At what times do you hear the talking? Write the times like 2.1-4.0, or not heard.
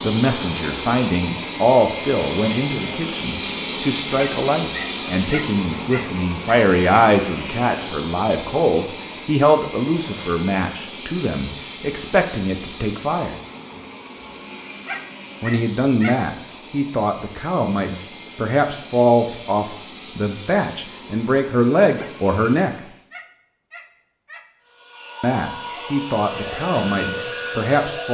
0.0-13.3, 15.4-22.7, 25.2-28.0.